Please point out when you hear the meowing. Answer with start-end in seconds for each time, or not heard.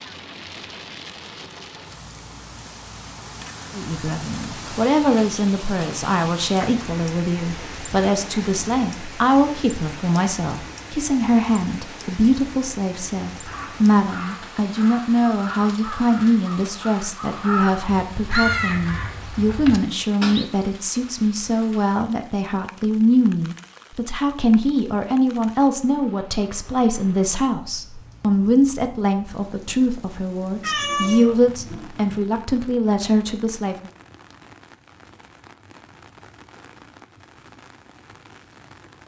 30.6-32.2.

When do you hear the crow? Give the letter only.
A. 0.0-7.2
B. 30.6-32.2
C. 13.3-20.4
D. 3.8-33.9
C.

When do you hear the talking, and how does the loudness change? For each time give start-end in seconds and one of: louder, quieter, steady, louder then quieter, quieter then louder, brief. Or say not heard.
3.8-33.9 steady.